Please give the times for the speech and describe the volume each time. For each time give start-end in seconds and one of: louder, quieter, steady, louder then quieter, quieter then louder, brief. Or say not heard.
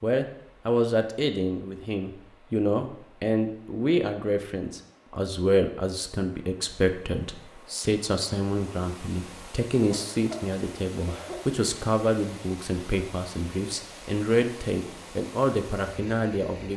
0.0-16.7 steady.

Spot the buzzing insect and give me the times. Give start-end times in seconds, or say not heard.
not heard.